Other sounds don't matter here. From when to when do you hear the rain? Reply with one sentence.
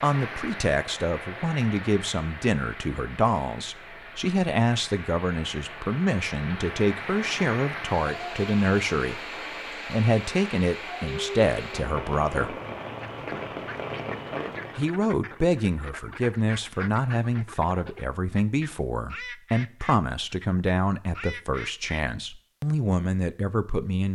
You can hear the rain from 0.0 to 15.0 s.